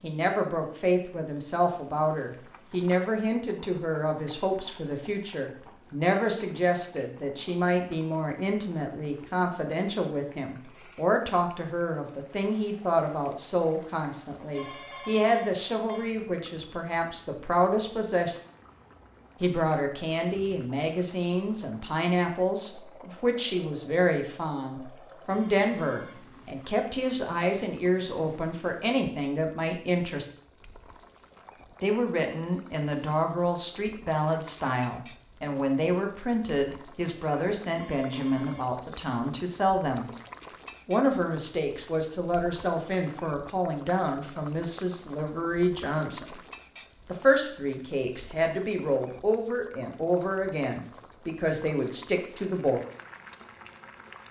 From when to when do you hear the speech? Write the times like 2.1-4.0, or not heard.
0.0-18.4, 19.4-30.3, 31.8-40.1, 40.9-46.4, 47.0-52.9.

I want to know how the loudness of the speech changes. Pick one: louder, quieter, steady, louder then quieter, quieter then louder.
steady.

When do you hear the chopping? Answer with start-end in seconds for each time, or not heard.
not heard.